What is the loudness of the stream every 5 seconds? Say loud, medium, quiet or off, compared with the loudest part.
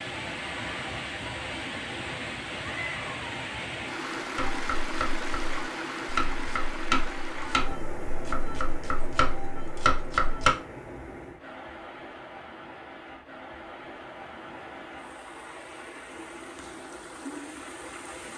loud, loud, medium, medium.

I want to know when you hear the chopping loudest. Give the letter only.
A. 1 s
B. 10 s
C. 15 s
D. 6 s
B.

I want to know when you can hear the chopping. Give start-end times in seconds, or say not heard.
4.3-10.5.